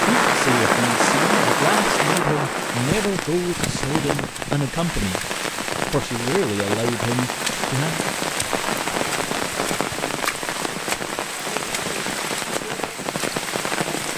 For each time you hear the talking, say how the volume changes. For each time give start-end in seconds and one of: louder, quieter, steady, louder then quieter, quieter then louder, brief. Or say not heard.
0.0-5.2 steady
5.9-8.0 brief.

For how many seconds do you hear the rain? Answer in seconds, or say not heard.
14 s.